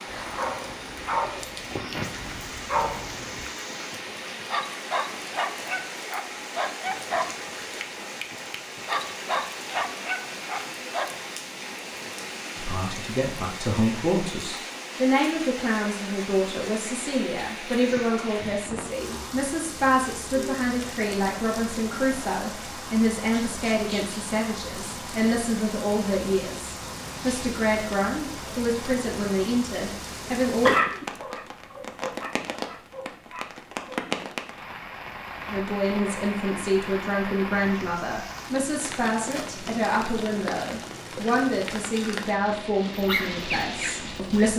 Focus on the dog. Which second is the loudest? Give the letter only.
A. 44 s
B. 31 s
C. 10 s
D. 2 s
B.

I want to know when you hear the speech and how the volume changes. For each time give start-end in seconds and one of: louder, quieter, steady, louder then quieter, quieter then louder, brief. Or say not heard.
12.6-30.8 steady
35.5-44.5 steady.